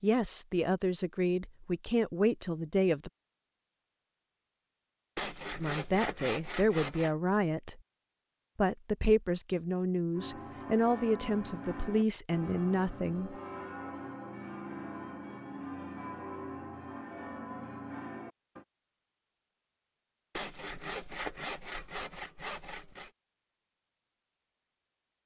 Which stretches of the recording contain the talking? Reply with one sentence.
The talking can be heard from 0.0 to 3.1 s, from 5.6 to 7.8 s and from 8.6 to 13.3 s.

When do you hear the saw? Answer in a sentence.
You can hear the saw from 5.2 to 7.2 s and from 20.4 to 23.1 s.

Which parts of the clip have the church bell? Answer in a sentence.
You can hear the church bell from 10.1 to 18.6 s.